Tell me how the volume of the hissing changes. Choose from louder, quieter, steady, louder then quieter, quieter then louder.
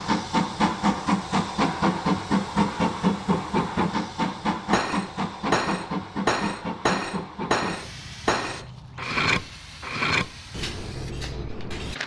quieter.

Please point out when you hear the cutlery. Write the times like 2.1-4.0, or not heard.
4.2-11.9.